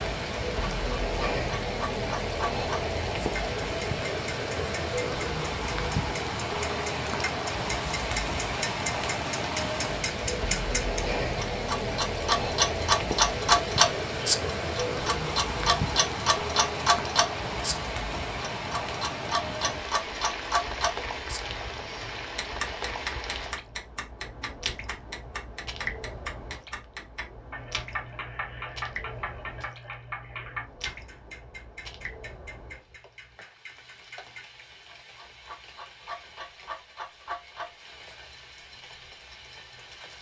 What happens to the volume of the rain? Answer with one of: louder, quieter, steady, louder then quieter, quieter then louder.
quieter.